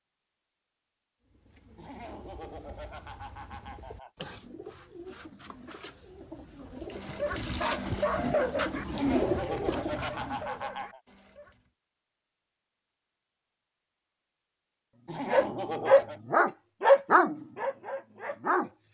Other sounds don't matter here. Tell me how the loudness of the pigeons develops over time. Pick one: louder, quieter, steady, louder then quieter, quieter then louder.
louder.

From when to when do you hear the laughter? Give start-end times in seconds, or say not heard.
1.8-4.1, 8.8-11.0, 15.1-16.2.